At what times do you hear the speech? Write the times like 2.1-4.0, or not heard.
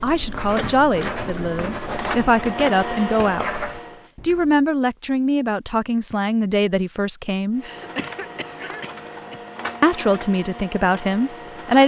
0.0-3.6, 4.2-7.7, 9.8-11.8.